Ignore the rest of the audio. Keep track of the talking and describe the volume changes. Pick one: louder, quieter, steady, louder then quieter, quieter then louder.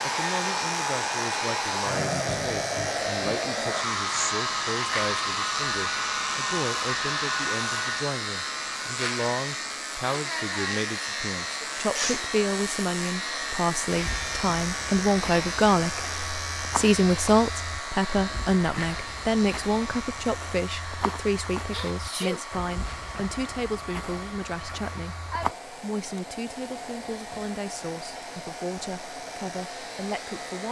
louder then quieter.